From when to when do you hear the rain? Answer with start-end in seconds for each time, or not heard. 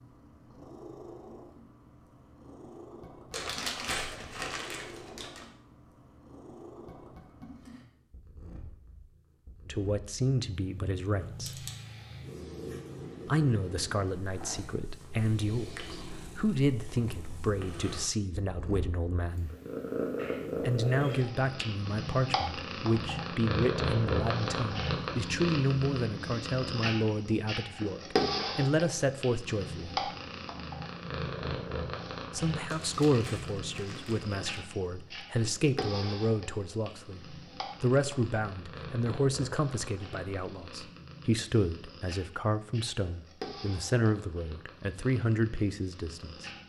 not heard.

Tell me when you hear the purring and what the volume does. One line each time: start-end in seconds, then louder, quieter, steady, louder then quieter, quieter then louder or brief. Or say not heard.
0.0-46.6 louder then quieter.